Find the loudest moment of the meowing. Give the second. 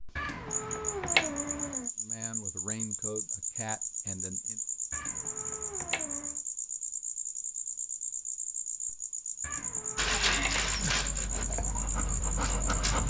1 s.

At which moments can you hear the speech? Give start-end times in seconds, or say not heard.
1.9-4.6.